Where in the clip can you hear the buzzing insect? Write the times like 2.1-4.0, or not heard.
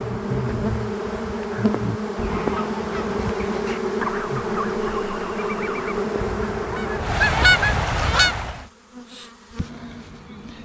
0.0-10.6.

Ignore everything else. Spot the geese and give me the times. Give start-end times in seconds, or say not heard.
0.0-8.7.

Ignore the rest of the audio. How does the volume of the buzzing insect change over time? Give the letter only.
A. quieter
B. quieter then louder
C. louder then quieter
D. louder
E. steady
A.